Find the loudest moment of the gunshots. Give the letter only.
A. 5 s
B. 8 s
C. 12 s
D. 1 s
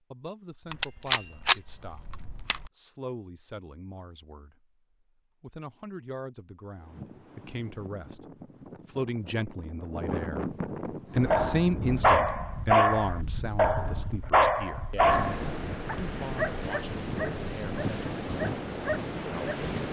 D.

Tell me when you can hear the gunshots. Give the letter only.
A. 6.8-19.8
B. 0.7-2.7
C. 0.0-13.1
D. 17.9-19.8
B.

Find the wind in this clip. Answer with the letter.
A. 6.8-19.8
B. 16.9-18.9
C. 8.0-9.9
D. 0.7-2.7
A.